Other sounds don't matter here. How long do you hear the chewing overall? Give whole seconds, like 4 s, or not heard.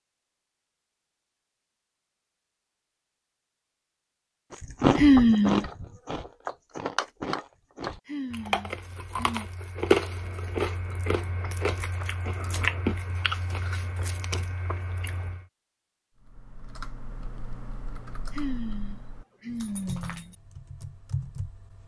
11 s.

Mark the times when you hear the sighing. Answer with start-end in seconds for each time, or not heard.
5.0-5.7, 8.1-9.4, 18.4-20.4.